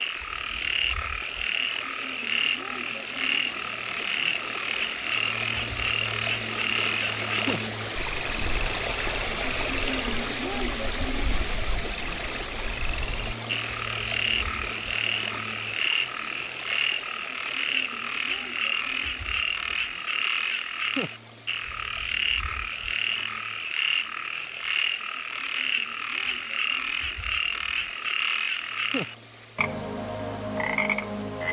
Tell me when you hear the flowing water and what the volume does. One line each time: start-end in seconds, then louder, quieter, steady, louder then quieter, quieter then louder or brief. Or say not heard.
0.0-31.4 louder then quieter.